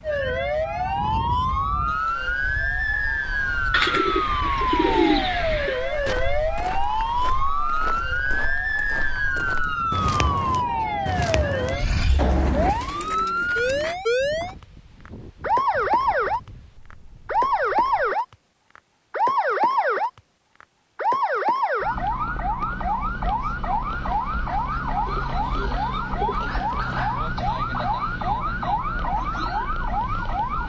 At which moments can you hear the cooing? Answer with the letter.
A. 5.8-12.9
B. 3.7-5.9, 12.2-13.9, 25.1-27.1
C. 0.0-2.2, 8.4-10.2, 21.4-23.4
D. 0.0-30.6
B.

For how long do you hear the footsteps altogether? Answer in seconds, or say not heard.
7 s.